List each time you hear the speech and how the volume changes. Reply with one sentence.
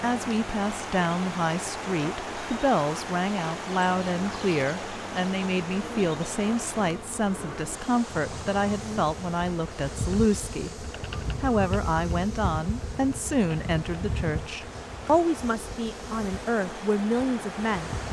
The speech can be heard from 0.0 to 17.9 s, at a steady volume.